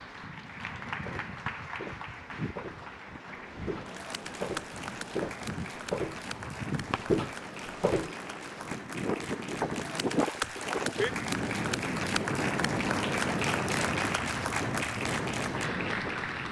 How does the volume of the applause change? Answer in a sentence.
The loudness of the applause goes up.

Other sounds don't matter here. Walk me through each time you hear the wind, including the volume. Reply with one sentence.
The wind can be heard from 0.0 to 16.4 s, getting louder.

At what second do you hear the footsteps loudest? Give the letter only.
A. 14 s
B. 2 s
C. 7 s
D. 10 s
C.